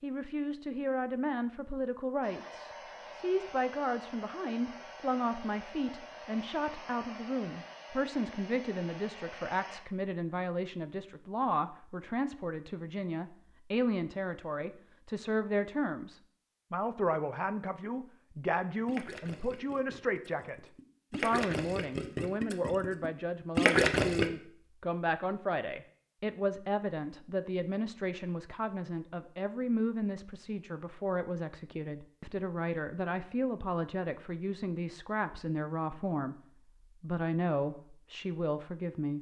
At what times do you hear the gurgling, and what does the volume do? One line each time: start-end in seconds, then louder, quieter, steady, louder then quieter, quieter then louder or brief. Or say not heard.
18.4-24.2 quieter then louder.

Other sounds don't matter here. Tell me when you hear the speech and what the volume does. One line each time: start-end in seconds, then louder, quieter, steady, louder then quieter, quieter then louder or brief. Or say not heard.
0.0-36.4 steady
37.0-39.1 brief.